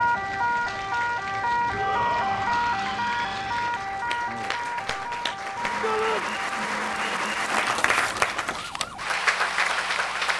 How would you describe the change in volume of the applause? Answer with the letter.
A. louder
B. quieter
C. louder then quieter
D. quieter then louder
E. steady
A.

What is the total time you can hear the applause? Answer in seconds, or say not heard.
10 s.